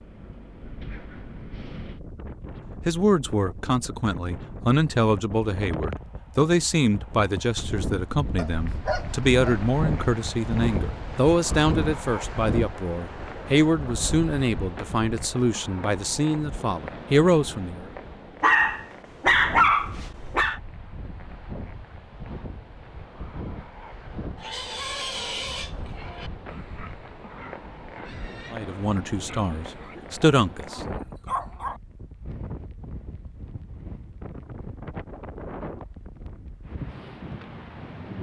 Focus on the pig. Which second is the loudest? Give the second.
25 s.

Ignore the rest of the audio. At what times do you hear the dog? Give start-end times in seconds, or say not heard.
8.3-9.7, 18.4-20.6, 29.8-31.8.